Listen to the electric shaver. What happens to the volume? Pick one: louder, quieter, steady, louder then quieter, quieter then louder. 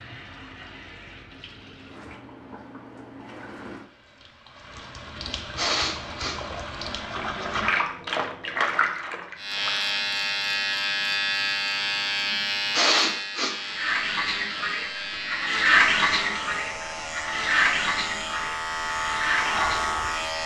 quieter then louder.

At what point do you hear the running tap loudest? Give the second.
16 s.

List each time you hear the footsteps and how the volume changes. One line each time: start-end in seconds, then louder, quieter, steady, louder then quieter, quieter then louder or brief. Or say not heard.
not heard.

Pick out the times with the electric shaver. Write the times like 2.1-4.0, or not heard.
9.3-20.4.